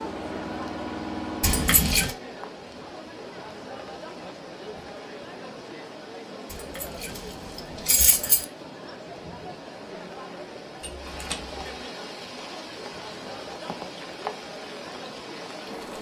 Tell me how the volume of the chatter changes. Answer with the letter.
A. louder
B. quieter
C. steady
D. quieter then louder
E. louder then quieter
C.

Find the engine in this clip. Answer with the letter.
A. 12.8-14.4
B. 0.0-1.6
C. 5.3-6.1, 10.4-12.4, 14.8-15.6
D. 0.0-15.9
B.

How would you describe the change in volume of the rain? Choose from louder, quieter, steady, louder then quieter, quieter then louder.
louder.